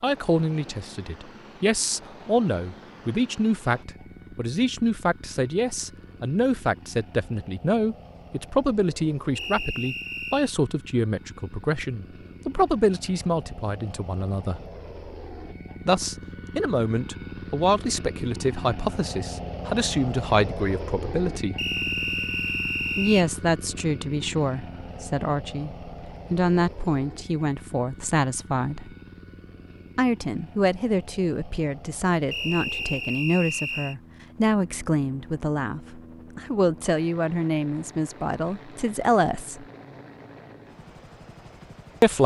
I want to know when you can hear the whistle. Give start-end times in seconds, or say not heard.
9.3-10.5, 21.6-23.2, 32.3-34.0.